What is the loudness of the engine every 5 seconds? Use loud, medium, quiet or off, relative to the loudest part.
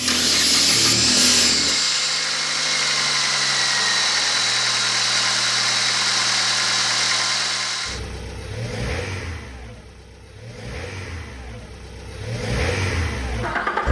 loud, loud, medium.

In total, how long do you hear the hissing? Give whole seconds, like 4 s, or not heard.
2 s.